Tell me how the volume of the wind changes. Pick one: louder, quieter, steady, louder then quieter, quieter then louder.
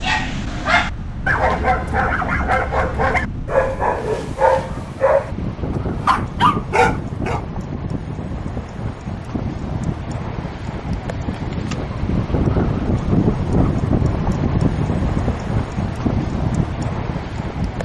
louder.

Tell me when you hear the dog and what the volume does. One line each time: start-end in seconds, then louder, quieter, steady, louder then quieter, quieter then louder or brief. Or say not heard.
0.0-7.4 steady.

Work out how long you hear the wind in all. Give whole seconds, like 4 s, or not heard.
18 s.